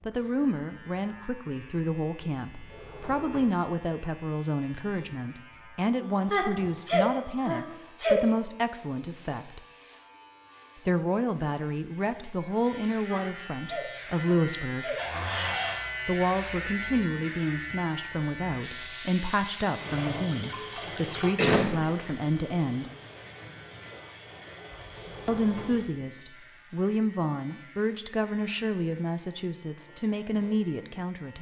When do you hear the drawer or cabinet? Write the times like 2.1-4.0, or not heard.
2.5-3.6, 14.9-15.8, 24.8-25.9.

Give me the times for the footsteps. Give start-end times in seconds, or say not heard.
not heard.